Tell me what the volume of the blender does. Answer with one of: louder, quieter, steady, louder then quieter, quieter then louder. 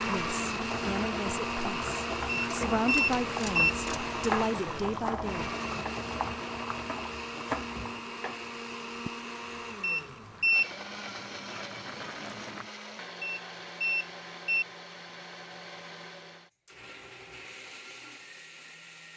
quieter.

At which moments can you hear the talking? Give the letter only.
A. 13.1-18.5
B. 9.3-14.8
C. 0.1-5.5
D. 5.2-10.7
C.